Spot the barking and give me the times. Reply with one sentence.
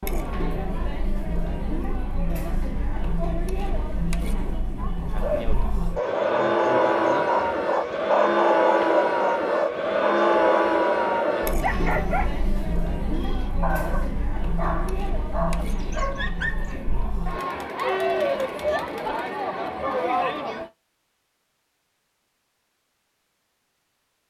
The barking can be heard from 5.2 to 16.8 s.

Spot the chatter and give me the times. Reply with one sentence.
The chatter can be heard from 0.0 to 20.7 s.